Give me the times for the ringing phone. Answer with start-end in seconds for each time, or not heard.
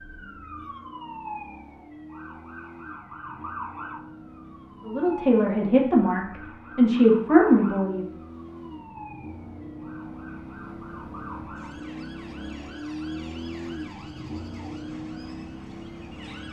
not heard.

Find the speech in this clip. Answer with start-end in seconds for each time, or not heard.
4.8-8.1.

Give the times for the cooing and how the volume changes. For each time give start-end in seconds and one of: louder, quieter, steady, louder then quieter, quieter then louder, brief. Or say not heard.
not heard.